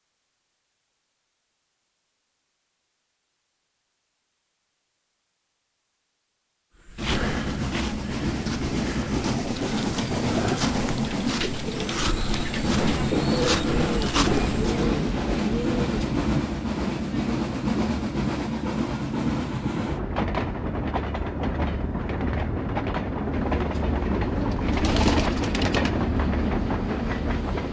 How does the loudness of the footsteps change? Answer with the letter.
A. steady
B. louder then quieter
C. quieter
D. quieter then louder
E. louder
E.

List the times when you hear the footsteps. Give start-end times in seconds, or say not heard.
6.8-14.8.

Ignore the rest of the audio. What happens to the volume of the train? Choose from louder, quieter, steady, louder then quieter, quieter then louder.
steady.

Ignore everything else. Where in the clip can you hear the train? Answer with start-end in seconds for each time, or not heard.
7.0-27.6.